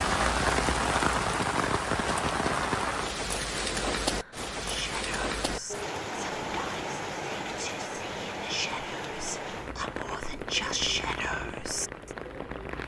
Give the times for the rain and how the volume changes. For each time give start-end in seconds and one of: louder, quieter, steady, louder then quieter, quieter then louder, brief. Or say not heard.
0.0-12.8 quieter.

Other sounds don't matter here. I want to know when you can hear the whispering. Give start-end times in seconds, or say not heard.
4.6-12.2.